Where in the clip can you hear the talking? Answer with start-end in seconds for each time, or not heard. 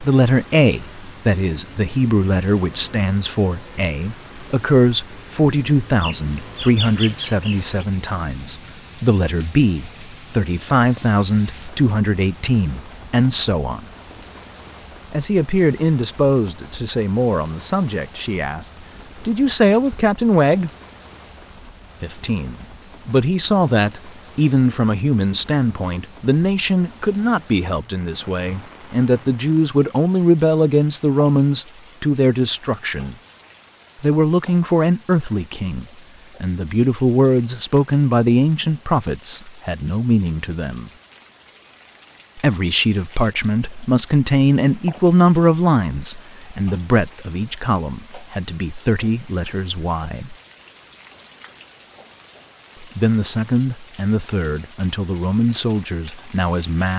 0.0-13.8, 15.1-20.7, 22.0-33.1, 34.0-40.9, 42.4-50.4, 52.8-56.9.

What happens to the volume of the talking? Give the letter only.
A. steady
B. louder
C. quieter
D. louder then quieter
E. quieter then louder
A.